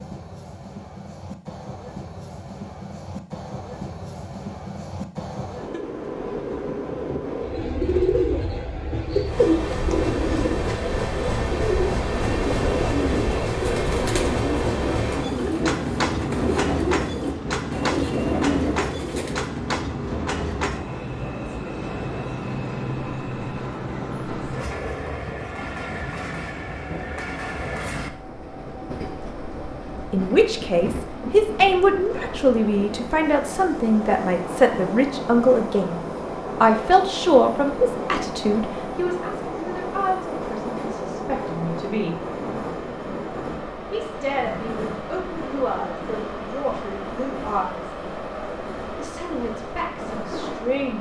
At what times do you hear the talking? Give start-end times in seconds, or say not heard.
30.1-36.0, 36.6-42.2, 43.9-47.9, 49.0-50.9.